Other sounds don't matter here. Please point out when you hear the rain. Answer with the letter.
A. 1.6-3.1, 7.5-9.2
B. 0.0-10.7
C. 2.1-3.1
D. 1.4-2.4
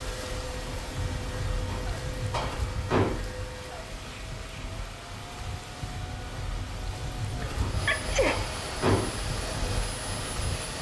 B.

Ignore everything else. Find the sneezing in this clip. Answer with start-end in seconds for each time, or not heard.
7.4-8.4.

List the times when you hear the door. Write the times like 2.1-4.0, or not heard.
1.6-3.1, 7.5-9.2.